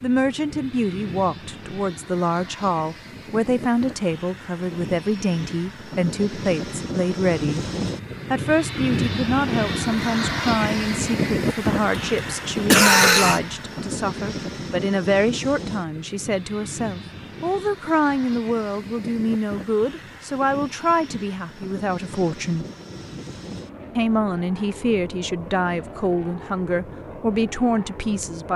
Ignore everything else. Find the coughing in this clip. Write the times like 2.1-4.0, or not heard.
12.2-13.4.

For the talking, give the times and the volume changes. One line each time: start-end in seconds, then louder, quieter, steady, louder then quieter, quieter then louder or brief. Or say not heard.
0.0-7.6 steady
8.3-22.6 steady
23.9-28.5 steady.